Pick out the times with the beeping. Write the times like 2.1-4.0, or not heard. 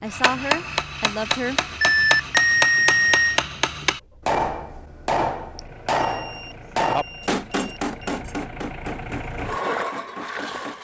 1.8-3.4, 5.5-8.2.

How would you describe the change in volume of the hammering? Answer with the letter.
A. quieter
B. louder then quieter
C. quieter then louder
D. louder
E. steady
A.